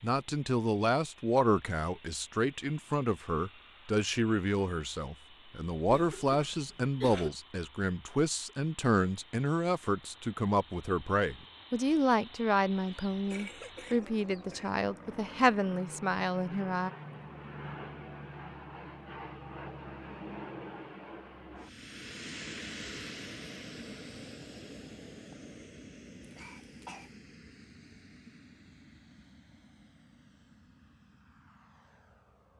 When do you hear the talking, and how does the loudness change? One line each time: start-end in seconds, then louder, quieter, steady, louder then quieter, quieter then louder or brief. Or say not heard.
0.0-16.9 steady.